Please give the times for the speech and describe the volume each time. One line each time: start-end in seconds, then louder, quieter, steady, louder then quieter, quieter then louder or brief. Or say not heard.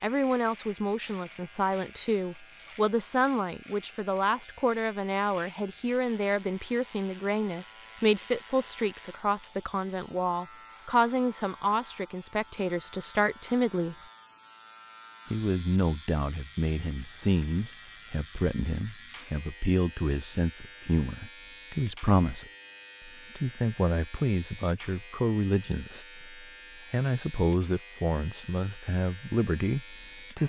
0.0-13.9 steady
15.3-22.4 steady
23.1-30.4 steady.